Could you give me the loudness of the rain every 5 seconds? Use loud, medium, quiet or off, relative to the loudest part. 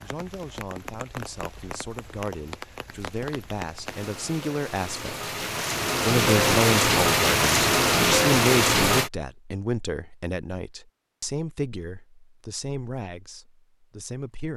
quiet, loud, off.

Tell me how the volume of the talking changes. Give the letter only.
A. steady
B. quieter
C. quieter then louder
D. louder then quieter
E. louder
D.